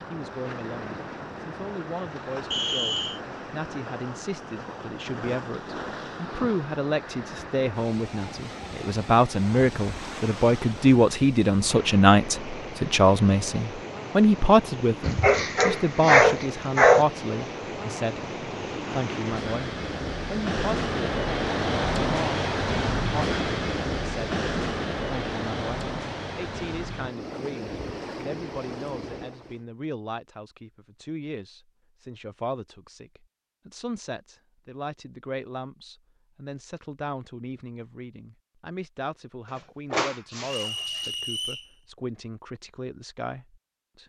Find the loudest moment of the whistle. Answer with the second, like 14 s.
3 s.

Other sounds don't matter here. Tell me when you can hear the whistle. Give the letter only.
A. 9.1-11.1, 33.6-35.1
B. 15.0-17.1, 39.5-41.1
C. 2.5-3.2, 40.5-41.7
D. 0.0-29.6
C.